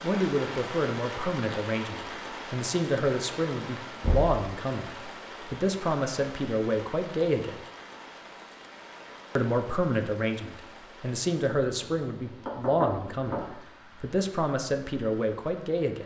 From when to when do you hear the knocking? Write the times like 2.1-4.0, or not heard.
4.0-4.4, 12.4-13.6.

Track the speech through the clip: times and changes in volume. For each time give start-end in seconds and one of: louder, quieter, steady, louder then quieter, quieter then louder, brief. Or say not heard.
0.0-7.6 steady
9.3-16.0 steady.